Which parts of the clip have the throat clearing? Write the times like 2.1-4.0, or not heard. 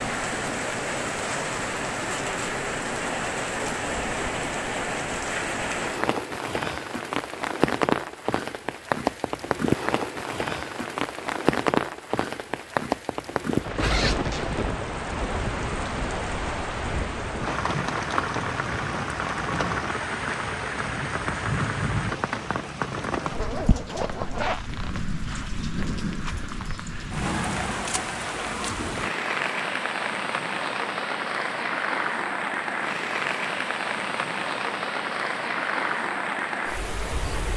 not heard.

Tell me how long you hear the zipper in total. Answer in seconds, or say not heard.
3 s.